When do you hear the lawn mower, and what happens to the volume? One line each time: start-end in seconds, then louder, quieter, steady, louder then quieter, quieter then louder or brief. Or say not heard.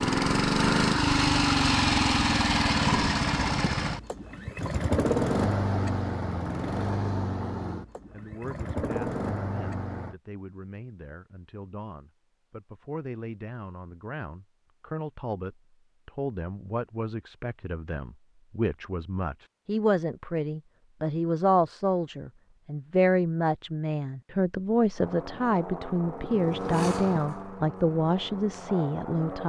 0.0-10.2 quieter
24.9-29.4 louder then quieter.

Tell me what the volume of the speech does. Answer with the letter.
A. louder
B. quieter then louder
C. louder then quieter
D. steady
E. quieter
A.